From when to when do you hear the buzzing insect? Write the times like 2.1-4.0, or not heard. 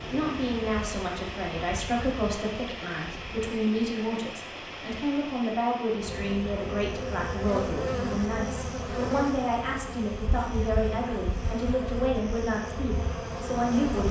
0.0-3.5, 6.0-14.0.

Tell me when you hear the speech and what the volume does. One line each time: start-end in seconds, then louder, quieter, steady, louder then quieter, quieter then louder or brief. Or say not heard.
0.0-14.0 steady.